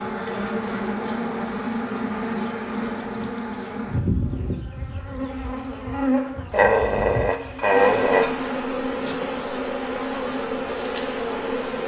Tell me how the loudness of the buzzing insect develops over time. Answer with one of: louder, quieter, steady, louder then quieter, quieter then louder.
steady.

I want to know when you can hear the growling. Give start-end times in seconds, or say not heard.
6.5-8.3.